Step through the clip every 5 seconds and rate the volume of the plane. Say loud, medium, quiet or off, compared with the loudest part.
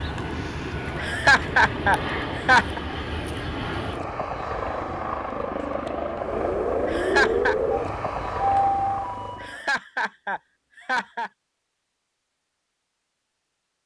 loud, loud, off.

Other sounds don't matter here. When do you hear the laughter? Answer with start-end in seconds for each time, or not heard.
0.9-2.8, 6.8-7.5, 9.4-11.3.